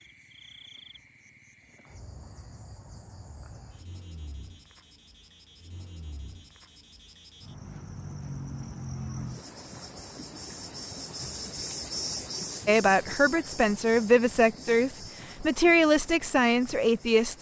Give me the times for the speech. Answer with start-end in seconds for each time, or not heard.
12.7-17.3.